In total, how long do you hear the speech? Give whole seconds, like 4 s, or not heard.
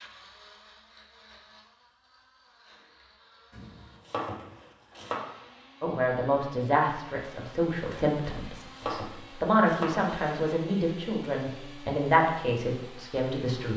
8 s.